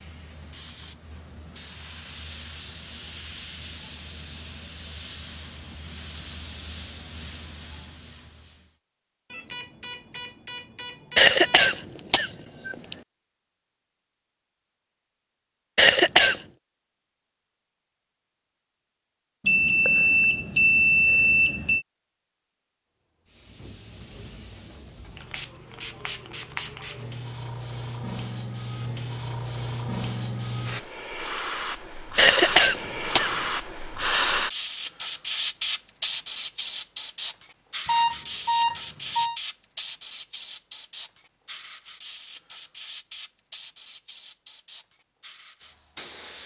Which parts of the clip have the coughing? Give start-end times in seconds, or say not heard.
11.2-12.9, 15.8-16.4, 32.1-33.3.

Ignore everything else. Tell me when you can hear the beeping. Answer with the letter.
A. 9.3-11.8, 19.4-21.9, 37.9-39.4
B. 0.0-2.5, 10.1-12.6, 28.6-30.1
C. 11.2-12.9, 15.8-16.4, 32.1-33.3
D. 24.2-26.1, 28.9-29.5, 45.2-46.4
A.